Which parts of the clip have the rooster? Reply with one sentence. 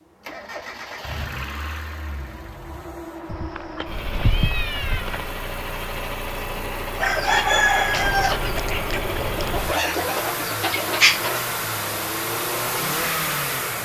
You can hear the rooster from 7.0 to 11.4 s.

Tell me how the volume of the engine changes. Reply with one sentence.
The loudness of the engine goes up.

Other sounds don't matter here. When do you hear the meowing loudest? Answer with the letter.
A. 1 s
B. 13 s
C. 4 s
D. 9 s
C.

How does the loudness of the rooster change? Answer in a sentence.
The loudness of the rooster goes down, then up.